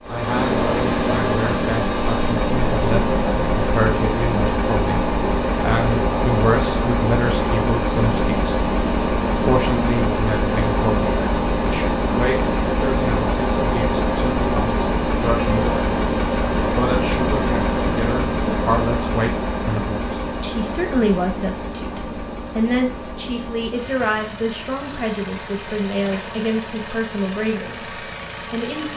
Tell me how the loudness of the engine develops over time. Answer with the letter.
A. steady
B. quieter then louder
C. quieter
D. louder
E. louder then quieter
C.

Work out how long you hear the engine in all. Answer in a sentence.
You can hear the engine for 29 seconds altogether.